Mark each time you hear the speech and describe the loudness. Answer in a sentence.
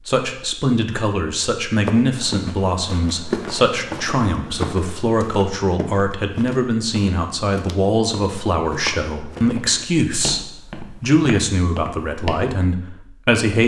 The speech can be heard from 0.1 to 13.6 s, at a steady volume.